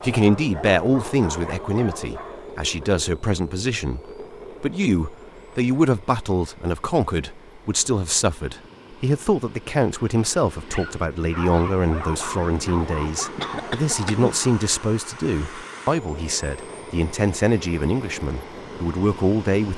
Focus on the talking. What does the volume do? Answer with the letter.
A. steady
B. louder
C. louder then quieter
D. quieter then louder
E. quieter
A.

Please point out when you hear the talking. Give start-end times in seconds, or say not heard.
0.0-4.0, 4.6-19.7.